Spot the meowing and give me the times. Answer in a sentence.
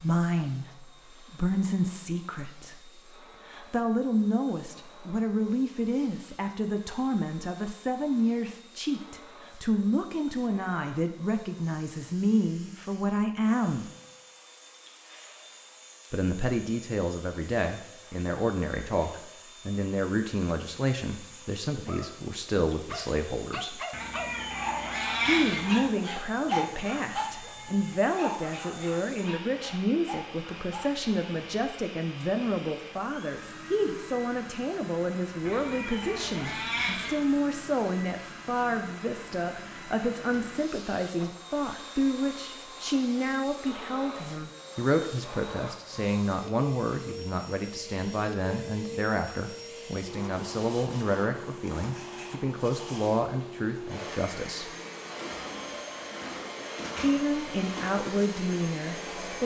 The meowing can be heard from 23.9 to 25.9 s and from 35.5 to 37.3 s.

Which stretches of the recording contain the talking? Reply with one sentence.
The talking can be heard from 0.0 to 13.9 s, from 16.1 to 23.8 s, from 25.2 to 54.7 s and from 57.0 to 59.4 s.